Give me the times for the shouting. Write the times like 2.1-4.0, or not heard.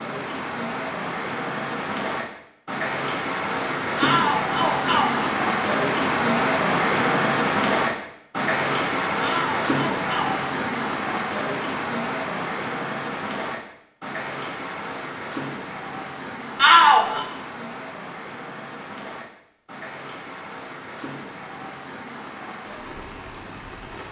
4.0-5.2, 9.2-10.3, 16.6-17.2.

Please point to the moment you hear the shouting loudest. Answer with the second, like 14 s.
17 s.